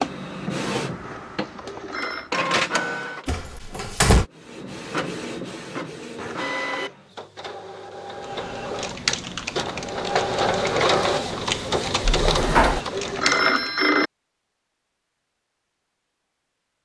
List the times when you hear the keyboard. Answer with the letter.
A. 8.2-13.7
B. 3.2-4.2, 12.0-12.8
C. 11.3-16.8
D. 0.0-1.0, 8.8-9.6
A.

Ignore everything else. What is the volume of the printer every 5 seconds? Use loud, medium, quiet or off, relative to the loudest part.
loud, medium, loud, off.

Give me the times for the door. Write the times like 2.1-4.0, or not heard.
3.2-4.2, 12.0-12.8.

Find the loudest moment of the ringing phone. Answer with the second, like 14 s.
13 s.